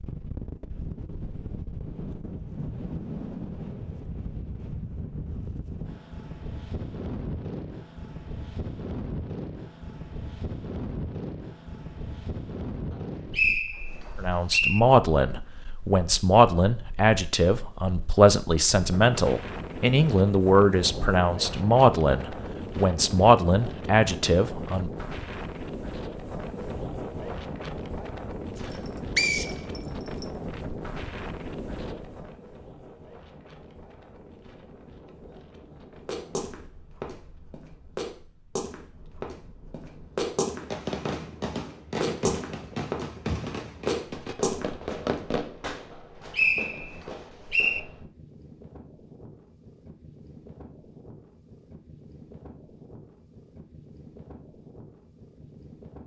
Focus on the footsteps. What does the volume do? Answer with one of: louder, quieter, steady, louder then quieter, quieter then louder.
louder.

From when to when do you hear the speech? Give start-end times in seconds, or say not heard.
14.2-25.1.